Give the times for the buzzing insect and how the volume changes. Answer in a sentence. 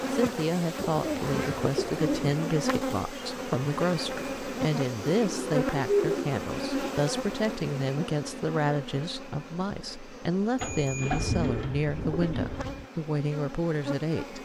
You can hear the buzzing insect from 0.0 to 14.3 s, getting quieter.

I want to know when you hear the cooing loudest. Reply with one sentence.
The volume of the cooing peaks at 6 seconds.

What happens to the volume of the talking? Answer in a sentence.
The loudness of the talking stays about the same.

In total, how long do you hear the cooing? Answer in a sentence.
You can hear the cooing for 6 seconds altogether.